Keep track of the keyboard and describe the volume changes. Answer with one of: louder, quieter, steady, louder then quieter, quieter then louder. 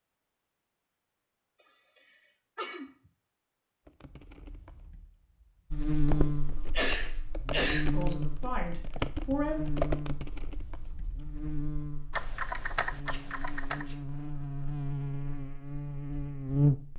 louder.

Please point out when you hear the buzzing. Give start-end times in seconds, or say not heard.
5.7-16.9.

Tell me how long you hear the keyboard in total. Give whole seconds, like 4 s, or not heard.
10 s.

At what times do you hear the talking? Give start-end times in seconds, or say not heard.
7.9-9.6.